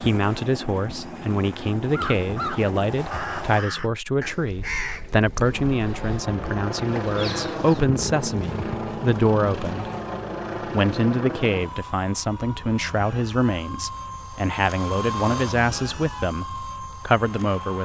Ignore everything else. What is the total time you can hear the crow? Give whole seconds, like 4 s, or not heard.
6 s.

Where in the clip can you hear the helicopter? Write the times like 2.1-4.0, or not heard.
0.0-3.6, 5.5-17.8.